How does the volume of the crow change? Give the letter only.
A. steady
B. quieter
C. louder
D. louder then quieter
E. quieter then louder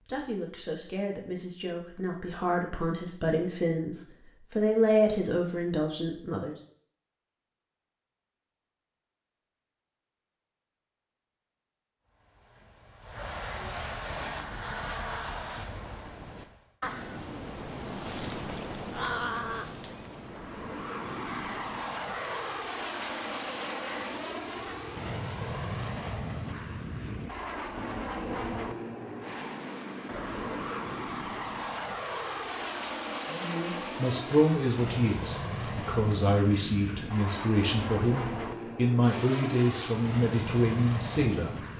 D.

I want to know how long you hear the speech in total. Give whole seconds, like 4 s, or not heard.
15 s.